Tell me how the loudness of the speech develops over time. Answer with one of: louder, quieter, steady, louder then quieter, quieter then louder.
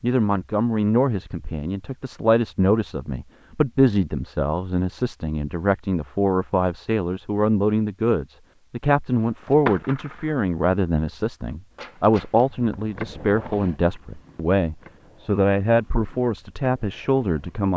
steady.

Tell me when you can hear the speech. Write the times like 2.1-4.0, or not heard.
0.0-17.7.